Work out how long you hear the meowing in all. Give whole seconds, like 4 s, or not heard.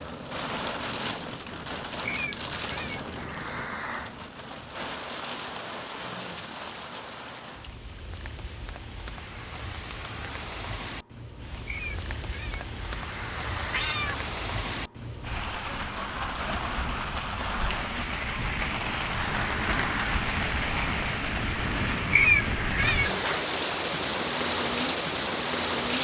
6 s.